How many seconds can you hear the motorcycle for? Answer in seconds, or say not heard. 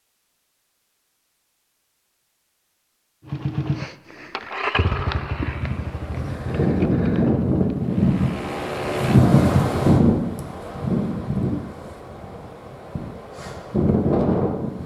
6 s.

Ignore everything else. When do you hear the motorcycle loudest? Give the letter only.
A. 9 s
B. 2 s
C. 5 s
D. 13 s
C.